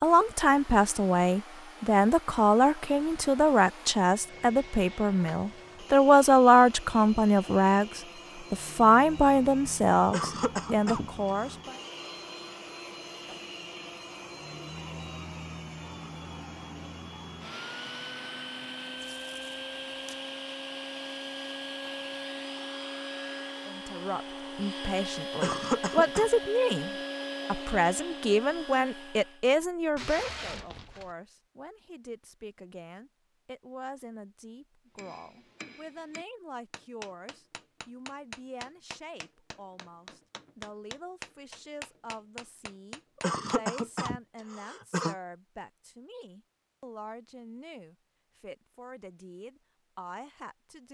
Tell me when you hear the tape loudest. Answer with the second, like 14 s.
30 s.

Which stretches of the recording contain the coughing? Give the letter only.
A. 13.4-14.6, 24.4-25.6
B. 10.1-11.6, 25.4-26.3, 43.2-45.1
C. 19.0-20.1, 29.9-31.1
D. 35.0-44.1
B.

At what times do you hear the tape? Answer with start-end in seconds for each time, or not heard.
19.0-20.1, 29.9-31.1.